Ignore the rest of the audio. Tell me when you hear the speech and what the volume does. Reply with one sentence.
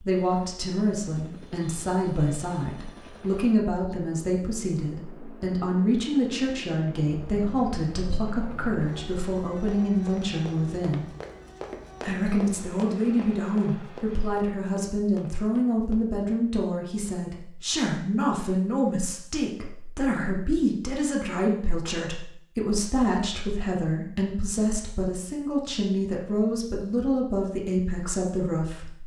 The speech can be heard from 0.0 to 11.1 s, at a steady volume; and from 12.0 to 29.0 s, at a steady volume.